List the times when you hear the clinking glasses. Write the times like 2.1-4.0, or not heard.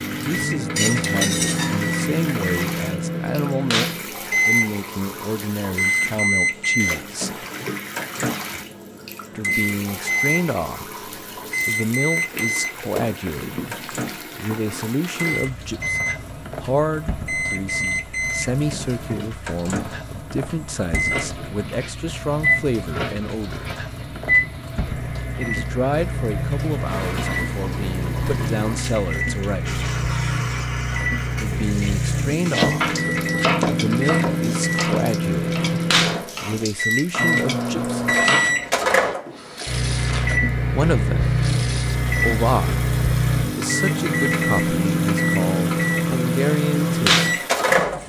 0.8-1.9.